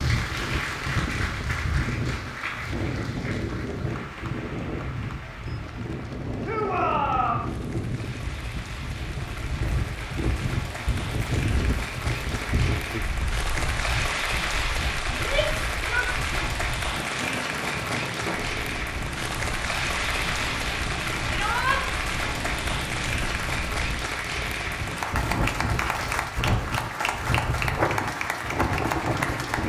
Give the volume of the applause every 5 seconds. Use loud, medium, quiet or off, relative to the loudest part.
medium, quiet, loud, loud, loud, loud.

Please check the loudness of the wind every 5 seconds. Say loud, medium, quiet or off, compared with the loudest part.
loud, loud, loud, medium, medium, loud.